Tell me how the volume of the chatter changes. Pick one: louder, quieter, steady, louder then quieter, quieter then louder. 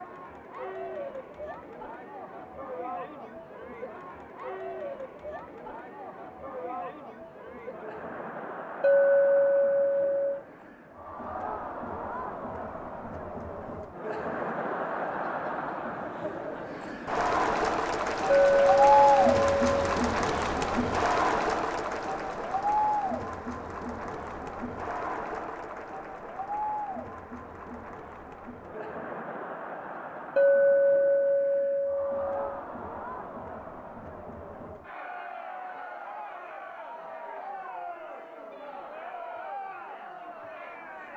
louder then quieter.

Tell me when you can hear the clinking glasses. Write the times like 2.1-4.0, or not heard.
8.8-10.4, 18.3-19.9, 30.4-32.5.